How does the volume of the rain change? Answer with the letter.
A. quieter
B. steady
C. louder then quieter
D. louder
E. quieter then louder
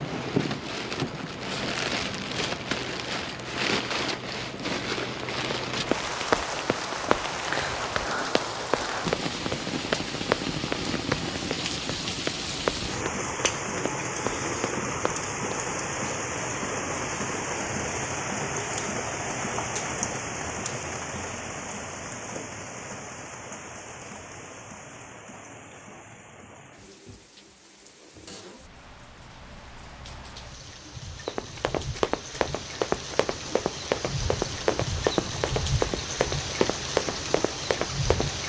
E.